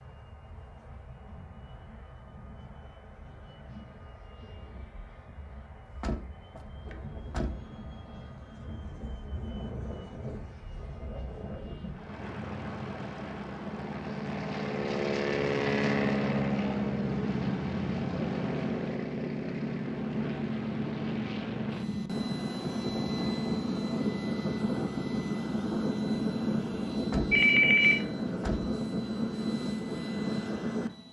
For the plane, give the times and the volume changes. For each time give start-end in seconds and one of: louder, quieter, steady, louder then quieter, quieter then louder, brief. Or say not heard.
0.0-31.0 louder.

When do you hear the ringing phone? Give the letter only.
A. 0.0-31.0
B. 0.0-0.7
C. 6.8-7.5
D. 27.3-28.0
D.